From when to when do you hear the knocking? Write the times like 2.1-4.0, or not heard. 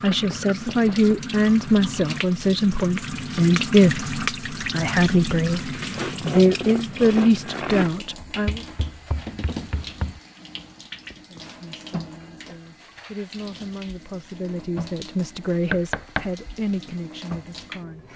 0.1-1.2, 8.2-10.2, 15.7-16.2.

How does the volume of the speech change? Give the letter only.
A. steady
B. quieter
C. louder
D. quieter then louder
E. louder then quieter
B.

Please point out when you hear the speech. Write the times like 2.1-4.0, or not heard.
0.0-8.7, 11.3-18.1.